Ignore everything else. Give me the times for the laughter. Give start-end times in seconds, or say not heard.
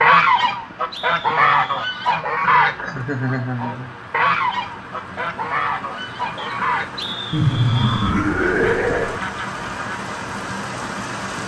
2.8-3.9, 7.3-9.2.